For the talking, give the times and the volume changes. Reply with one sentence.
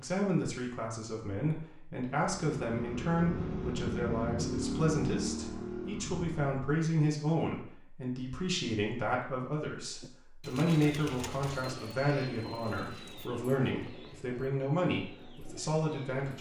You can hear the talking from 0.0 to 16.3 s, at a steady volume.